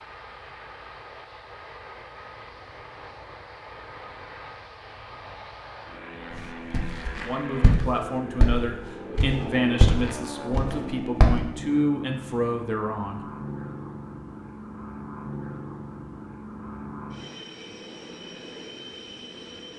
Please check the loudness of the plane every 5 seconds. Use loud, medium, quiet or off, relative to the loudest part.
medium, loud, loud, loud.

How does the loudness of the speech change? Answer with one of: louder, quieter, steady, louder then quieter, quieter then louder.
steady.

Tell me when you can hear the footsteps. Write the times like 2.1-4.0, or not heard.
6.7-11.3.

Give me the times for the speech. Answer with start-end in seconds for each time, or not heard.
7.2-13.2.